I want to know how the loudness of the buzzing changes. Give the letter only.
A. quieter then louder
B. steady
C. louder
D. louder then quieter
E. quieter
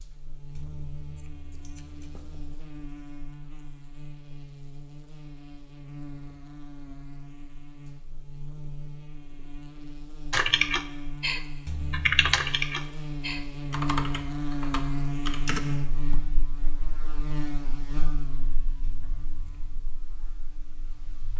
D.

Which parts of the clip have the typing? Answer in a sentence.
You can hear the typing from 10.3 to 16.3 s.